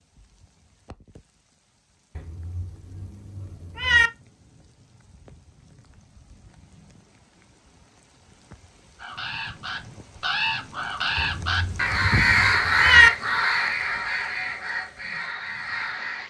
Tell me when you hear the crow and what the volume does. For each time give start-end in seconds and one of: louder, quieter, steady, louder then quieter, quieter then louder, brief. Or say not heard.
8.9-16.2 louder then quieter.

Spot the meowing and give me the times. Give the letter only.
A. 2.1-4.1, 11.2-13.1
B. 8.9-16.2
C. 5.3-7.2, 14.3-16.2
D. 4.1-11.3
A.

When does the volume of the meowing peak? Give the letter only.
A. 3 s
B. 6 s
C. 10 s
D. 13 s
D.